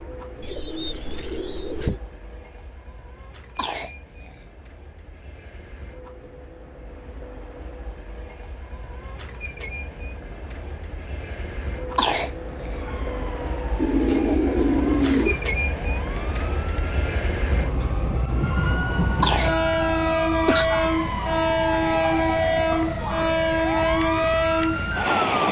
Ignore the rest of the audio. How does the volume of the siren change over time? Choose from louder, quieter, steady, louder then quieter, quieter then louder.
louder.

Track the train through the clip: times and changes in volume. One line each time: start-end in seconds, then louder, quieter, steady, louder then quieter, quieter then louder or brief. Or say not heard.
0.0-25.4 louder.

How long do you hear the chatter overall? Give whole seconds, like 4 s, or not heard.
not heard.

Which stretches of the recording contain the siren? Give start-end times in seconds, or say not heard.
12.7-25.3.